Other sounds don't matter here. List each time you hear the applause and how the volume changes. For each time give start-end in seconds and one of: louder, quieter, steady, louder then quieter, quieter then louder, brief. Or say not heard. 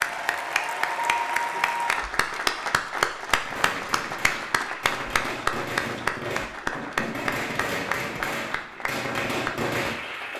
0.0-10.3 quieter.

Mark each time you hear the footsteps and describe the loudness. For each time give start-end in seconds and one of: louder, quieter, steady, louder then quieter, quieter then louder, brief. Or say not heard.
not heard.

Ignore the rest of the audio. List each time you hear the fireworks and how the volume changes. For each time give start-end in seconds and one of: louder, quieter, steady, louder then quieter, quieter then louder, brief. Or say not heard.
3.4-9.9 louder.